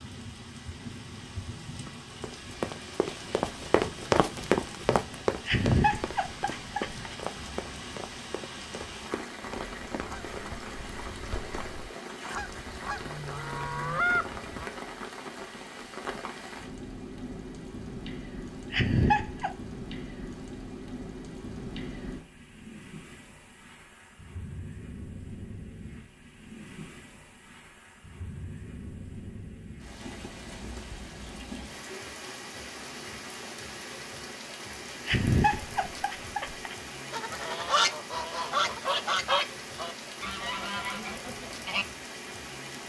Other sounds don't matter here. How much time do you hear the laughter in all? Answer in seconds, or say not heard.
4 s.